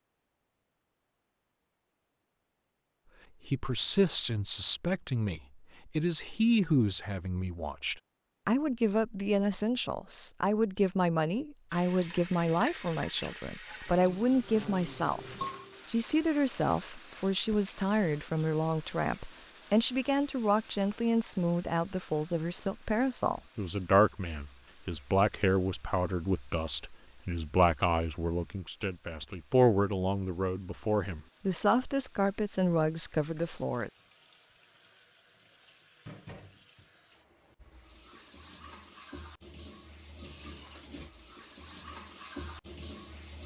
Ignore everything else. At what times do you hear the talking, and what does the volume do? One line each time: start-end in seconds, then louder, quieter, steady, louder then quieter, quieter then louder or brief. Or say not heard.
3.5-33.9 steady.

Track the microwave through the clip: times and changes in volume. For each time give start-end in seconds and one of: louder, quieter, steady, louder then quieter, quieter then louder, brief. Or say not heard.
not heard.